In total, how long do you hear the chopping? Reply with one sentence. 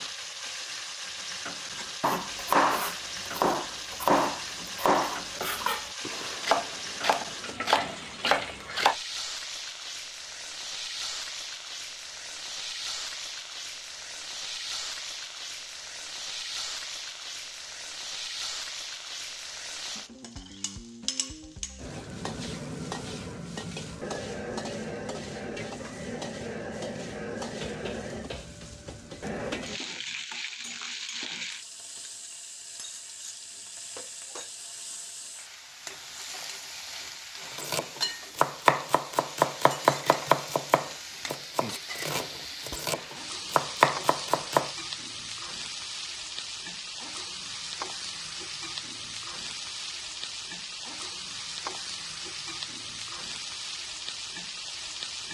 The chopping can be heard for 14 seconds in total.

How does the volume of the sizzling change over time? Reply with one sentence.
The volume of the sizzling stays about the same.